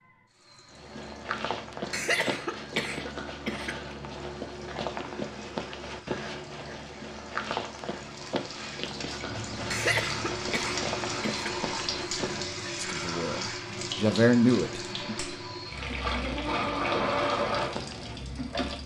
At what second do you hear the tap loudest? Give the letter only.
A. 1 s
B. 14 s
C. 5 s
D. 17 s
D.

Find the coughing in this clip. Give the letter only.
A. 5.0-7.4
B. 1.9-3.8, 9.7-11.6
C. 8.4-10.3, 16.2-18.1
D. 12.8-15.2
B.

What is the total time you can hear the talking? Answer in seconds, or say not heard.
2 s.